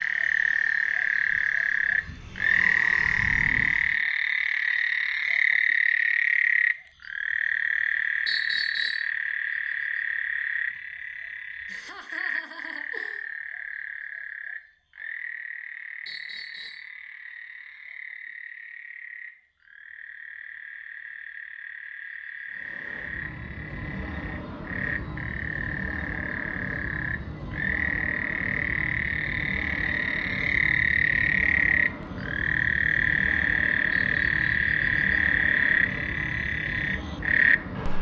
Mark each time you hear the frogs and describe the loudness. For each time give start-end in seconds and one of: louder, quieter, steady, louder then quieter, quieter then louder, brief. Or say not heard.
0.0-37.9 quieter then louder.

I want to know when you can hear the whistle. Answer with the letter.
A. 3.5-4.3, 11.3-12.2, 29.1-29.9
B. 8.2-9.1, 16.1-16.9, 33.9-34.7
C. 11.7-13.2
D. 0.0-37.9
B.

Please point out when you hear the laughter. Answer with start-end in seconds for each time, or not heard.
11.7-13.2.